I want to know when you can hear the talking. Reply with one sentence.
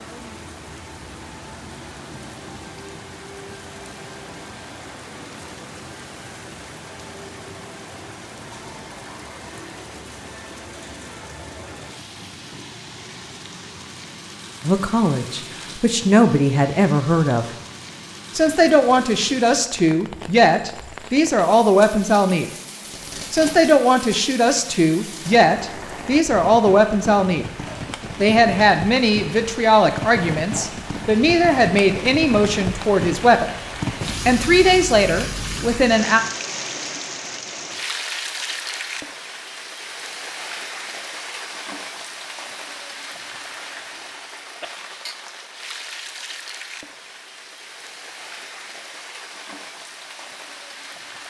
You can hear the talking from 14.7 to 17.4 s, from 18.4 to 22.5 s, from 23.3 to 27.4 s, from 28.2 to 33.5 s and from 34.2 to 36.2 s.